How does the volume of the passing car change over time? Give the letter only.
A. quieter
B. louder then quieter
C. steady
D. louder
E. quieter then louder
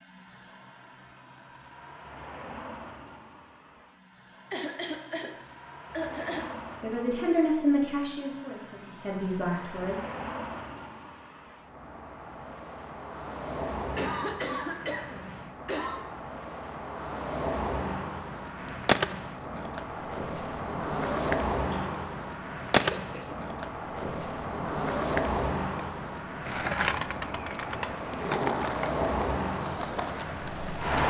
D.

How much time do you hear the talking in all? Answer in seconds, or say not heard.
3 s.